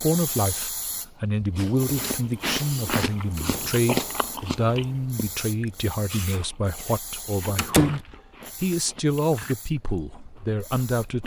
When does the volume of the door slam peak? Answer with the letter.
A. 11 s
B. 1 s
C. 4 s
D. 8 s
D.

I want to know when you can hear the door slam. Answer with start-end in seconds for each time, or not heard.
3.4-3.8, 7.5-8.0.